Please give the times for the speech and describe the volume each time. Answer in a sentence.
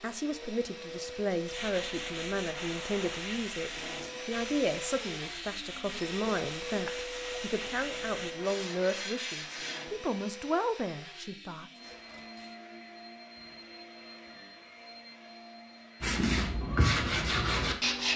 You can hear the speech from 0.0 to 11.7 s, at a steady volume.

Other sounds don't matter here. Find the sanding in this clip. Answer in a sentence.
You can hear the sanding from 1.4 to 9.8 s and from 16.0 to 18.1 s.